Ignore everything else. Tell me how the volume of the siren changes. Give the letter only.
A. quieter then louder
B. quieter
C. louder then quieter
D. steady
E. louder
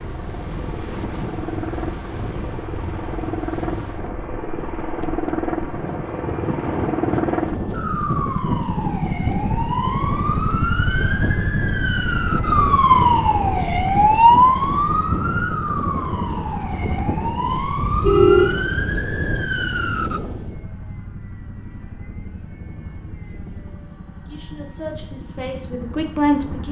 C.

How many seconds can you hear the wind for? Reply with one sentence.
The wind can be heard for 21 seconds in total.